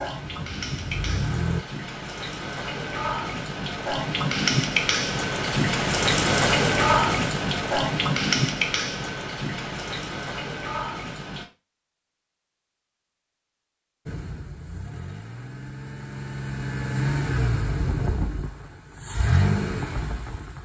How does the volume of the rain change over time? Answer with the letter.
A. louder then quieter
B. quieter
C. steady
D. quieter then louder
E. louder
A.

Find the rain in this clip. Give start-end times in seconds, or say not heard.
0.0-11.4.